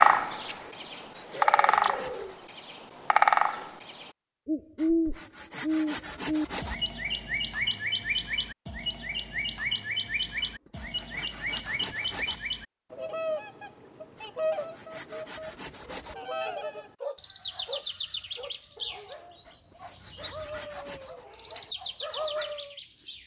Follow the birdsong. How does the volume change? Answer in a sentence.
The volume of the birdsong goes down.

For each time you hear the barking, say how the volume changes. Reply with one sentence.
You can hear the barking from 17.0 to 22.8 s, getting quieter then louder.